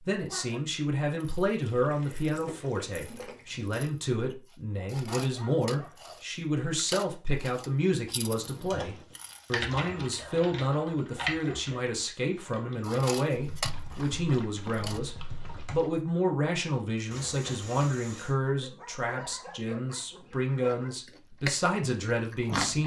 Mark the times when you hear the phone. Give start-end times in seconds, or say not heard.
not heard.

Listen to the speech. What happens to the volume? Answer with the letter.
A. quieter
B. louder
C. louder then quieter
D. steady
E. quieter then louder
D.